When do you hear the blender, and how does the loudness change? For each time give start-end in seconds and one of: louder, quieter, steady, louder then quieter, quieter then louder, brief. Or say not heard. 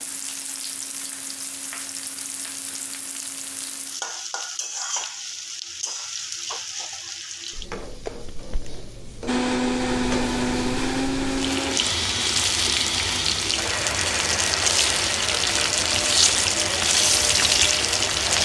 9.2-18.4 quieter.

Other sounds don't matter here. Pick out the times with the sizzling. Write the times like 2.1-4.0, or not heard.
0.0-18.4.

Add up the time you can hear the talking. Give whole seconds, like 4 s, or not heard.
not heard.